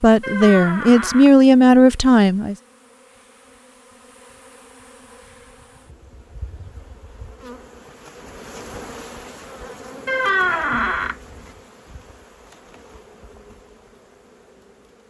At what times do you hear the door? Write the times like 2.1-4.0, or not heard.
0.2-1.3, 10.1-11.2.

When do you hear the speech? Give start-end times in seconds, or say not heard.
0.0-2.5.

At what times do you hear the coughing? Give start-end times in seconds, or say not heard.
not heard.